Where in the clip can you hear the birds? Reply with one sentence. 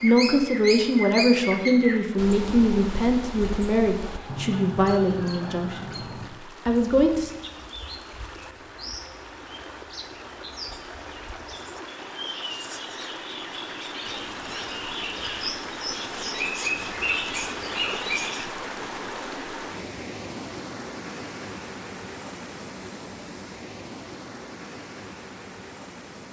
The birds can be heard from 0.0 to 18.4 s.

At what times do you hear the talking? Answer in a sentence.
You can hear the talking from 0.0 to 5.9 s and from 6.7 to 7.3 s.